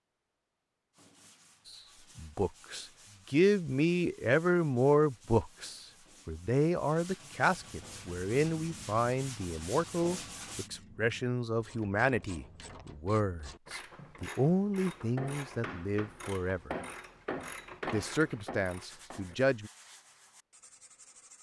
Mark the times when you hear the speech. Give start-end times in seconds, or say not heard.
1.6-16.8, 17.9-19.7.